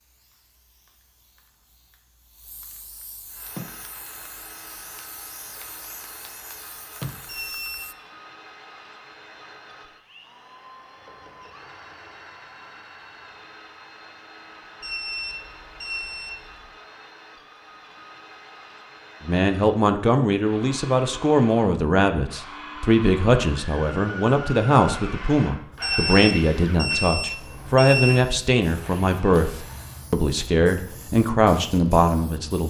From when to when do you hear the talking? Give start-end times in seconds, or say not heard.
19.2-32.6.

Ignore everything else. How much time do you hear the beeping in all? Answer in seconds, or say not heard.
5 s.